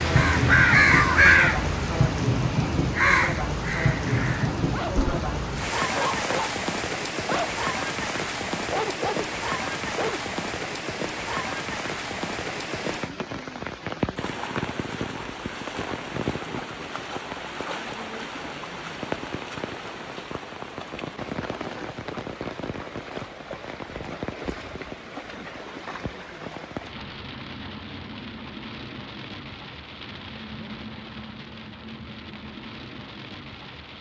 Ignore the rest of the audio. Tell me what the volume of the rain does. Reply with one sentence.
The volume of the rain goes down.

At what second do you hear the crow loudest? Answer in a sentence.
The loudest moment of the crow is at 1 second.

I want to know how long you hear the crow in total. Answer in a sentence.
You can hear the crow for 5 seconds altogether.